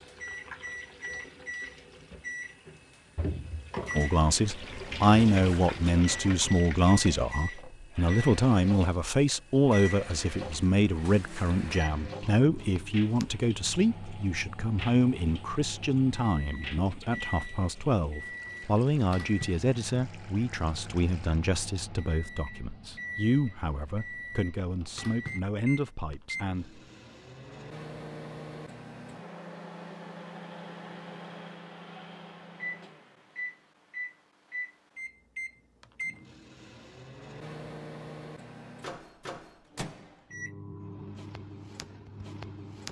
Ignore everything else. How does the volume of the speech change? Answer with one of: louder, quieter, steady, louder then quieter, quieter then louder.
quieter.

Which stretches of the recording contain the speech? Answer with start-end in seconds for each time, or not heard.
4.0-26.8.